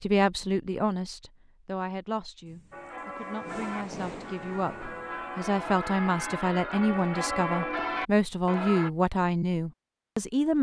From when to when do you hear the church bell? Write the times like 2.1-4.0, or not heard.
2.7-8.9.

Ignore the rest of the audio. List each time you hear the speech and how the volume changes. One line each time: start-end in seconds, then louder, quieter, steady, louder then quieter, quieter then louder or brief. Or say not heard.
0.0-10.5 quieter then louder.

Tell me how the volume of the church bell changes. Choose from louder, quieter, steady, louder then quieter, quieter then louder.
louder.